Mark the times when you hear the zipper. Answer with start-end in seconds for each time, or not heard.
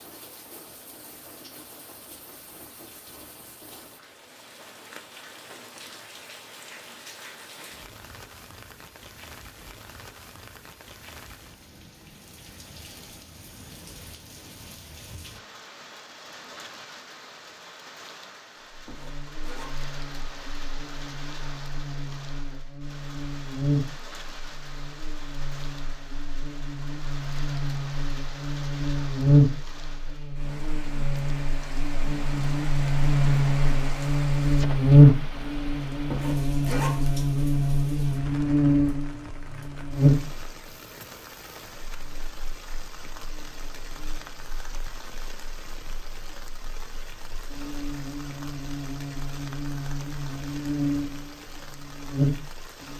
18.6-19.7, 35.9-37.2.